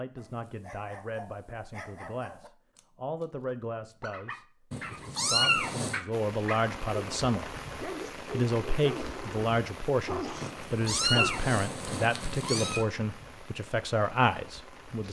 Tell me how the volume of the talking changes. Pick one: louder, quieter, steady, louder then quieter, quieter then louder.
louder.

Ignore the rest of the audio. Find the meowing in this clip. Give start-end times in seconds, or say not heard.
4.7-6.0, 10.4-12.8.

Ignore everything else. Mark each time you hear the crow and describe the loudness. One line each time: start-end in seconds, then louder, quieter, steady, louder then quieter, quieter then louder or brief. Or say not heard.
not heard.